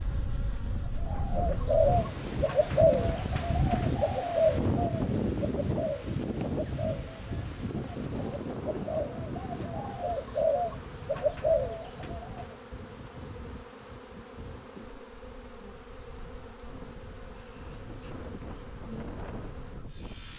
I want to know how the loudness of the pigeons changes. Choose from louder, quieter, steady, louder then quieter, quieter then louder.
quieter then louder.